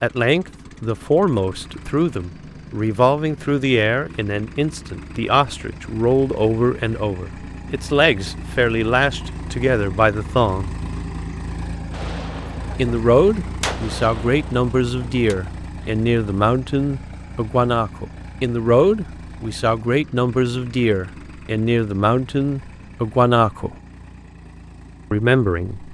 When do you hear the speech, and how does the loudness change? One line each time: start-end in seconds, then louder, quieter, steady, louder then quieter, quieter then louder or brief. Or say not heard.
0.0-10.7 steady
12.8-23.8 steady
25.1-25.8 brief.